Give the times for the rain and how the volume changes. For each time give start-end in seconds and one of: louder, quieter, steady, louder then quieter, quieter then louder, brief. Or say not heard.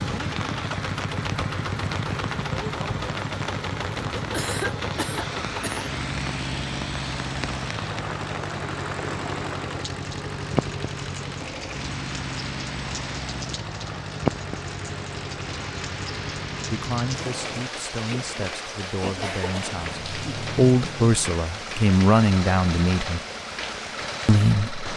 0.0-24.9 steady.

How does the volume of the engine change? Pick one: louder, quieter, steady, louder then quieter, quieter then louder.
quieter.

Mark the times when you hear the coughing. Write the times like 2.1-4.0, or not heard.
4.3-5.9, 19.2-19.8.